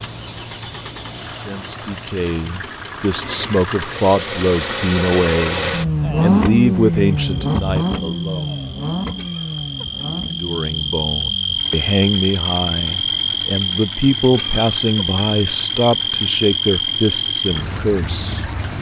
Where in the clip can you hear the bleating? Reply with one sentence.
The bleating can't be heard in this clip.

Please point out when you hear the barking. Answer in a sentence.
You can't hear the barking here.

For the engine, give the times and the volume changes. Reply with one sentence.
The engine can be heard from 0.0 to 18.6 s, getting louder then quieter.